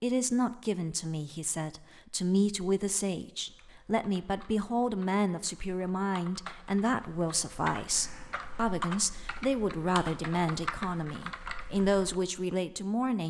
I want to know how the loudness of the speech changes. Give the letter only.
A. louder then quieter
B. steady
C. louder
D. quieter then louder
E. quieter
B.